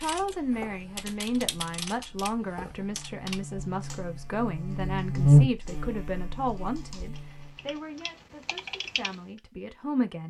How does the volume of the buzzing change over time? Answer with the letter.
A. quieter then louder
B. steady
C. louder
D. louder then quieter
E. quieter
D.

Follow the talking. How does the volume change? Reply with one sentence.
The loudness of the talking goes down.